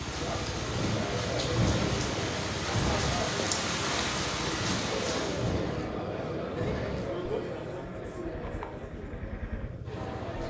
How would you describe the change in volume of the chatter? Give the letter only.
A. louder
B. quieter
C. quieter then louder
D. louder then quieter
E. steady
B.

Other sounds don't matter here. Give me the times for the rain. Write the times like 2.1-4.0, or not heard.
0.0-5.7.